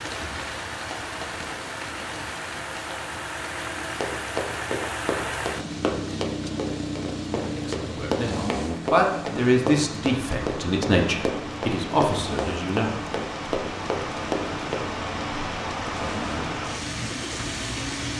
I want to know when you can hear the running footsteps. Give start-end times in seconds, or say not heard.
4.0-14.8.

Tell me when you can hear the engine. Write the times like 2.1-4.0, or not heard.
0.0-18.1.